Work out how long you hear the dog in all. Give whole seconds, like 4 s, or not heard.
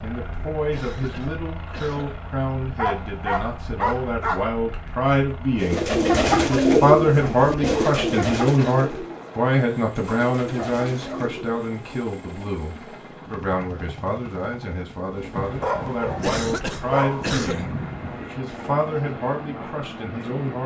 6 s.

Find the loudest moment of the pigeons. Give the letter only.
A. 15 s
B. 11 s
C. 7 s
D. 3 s
C.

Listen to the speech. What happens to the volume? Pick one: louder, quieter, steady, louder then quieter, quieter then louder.
louder then quieter.